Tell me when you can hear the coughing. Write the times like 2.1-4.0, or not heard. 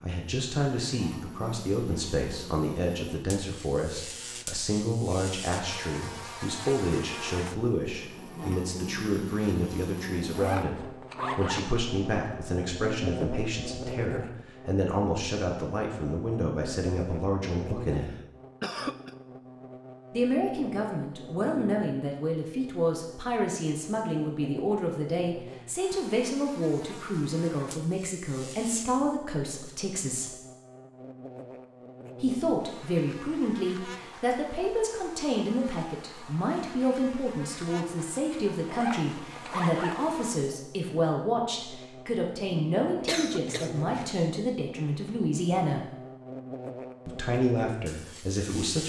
17.9-19.1, 43.0-44.2.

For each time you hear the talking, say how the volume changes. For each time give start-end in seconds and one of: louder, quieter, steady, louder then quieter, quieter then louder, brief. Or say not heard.
0.0-18.1 steady
20.1-30.4 steady
32.2-45.9 steady
47.0-48.8 brief.